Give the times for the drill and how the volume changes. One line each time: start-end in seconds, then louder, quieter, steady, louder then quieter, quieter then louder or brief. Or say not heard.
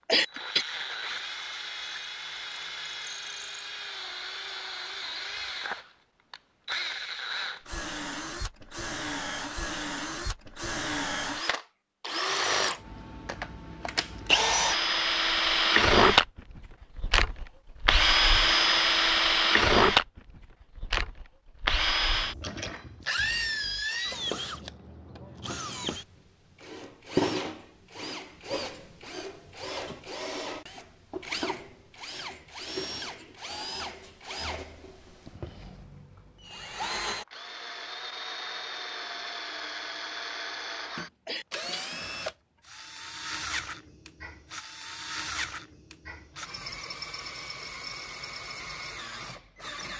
0.1-49.9 louder then quieter.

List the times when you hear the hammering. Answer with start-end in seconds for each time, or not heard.
not heard.